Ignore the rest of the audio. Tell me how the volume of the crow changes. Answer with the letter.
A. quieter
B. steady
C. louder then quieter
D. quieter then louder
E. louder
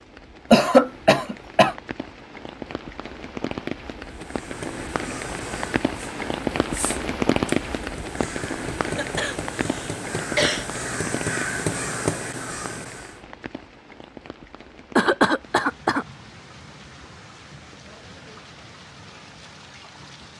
E.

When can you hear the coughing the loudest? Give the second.
1 s.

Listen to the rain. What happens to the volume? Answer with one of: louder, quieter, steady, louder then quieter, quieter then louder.
louder then quieter.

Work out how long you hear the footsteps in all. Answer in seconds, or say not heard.
not heard.